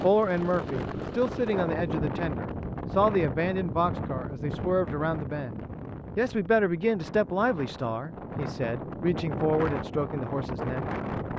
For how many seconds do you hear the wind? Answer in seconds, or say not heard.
11 s.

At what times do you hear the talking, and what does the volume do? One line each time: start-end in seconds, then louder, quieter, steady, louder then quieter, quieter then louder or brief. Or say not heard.
0.0-10.8 steady.